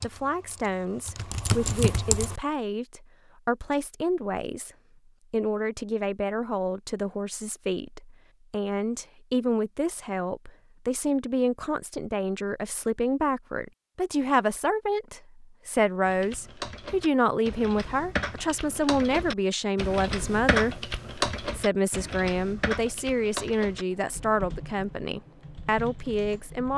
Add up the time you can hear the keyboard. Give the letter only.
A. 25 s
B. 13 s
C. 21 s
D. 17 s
B.